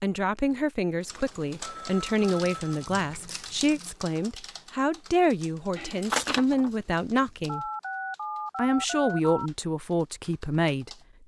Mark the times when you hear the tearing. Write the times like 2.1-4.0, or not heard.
2.2-4.0, 5.8-7.5.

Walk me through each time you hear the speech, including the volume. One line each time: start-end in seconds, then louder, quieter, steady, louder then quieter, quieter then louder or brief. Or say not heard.
0.0-7.7 steady
8.6-10.9 brief.